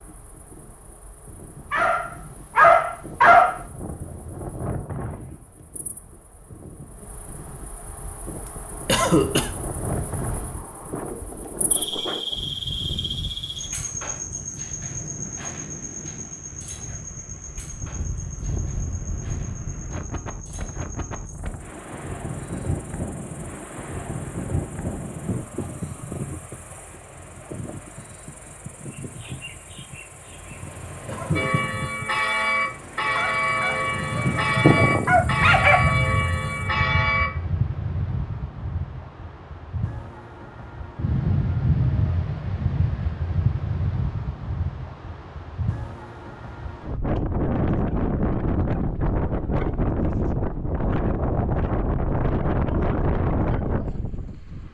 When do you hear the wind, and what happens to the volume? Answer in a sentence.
The wind can be heard from 0.0 to 54.6 s, getting louder.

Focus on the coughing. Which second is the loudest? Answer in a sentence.
The volume of the coughing peaks at 9 seconds.